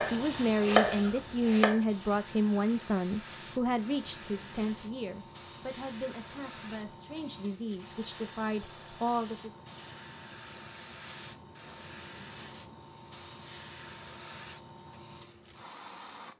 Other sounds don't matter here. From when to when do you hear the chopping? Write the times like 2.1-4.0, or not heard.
0.0-1.8.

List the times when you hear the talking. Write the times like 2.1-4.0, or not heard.
0.1-9.5.